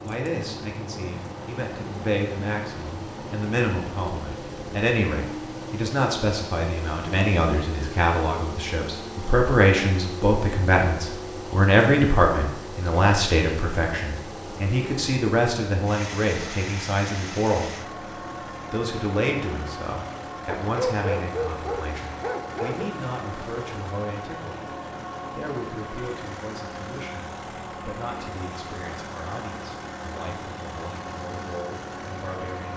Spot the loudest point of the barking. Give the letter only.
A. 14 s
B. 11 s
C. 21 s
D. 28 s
C.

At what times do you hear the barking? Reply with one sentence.
The barking can be heard from 20.6 to 22.9 s.